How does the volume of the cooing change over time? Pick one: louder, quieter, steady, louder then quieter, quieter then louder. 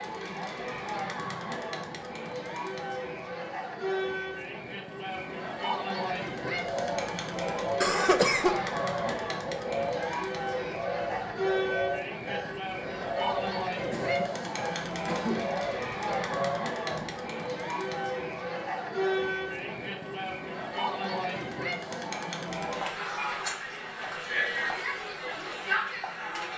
steady.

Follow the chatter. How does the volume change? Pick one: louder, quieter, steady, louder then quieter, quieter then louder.
steady.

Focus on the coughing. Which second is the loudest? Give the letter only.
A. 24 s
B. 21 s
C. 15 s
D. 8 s
D.